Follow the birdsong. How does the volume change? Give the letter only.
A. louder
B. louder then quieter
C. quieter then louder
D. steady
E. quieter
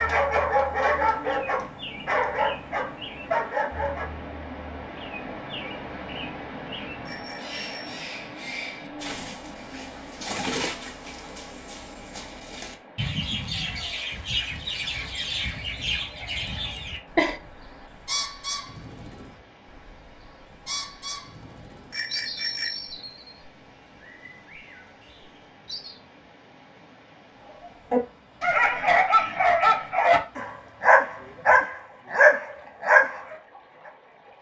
B.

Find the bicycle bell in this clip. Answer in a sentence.
The bicycle bell can be heard from 7.0 to 8.0 s and from 21.9 to 22.9 s.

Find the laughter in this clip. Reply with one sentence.
You can hear the laughter from 16.8 to 17.4 s.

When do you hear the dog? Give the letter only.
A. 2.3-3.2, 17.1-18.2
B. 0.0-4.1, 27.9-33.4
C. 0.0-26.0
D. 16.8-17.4
B.